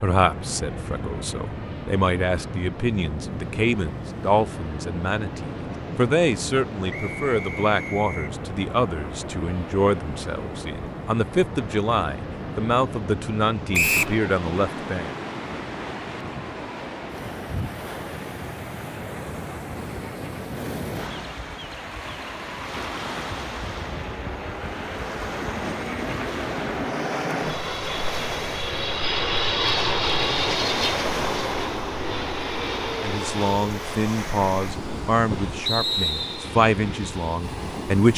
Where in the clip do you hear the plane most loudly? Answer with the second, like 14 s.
30 s.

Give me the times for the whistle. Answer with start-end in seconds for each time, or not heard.
6.9-8.3, 13.7-14.2, 35.6-36.5.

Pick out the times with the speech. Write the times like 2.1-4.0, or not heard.
0.0-15.1, 33.0-38.1.